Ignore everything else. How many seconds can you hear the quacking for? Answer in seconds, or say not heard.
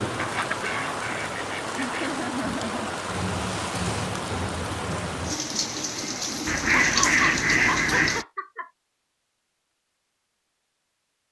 4 s.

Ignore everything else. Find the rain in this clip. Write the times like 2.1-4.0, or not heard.
0.0-8.2.